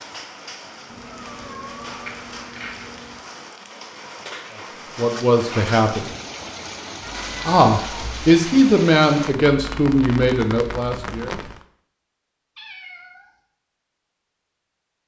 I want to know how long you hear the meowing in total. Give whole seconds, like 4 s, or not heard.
4 s.